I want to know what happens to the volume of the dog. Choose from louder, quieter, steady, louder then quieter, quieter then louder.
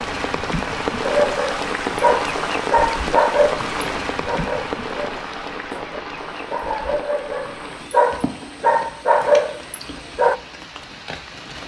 quieter then louder.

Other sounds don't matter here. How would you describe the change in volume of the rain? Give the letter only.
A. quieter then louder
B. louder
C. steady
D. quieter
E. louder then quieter
D.